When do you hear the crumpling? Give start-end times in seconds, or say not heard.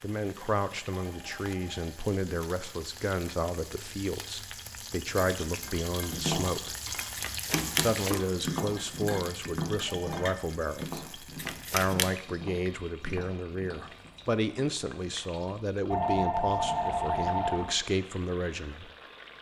7.2-8.2, 11.3-12.2.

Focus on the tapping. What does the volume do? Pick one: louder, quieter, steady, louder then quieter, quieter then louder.
quieter.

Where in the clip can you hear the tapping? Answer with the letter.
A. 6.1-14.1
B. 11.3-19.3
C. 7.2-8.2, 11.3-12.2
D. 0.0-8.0
A.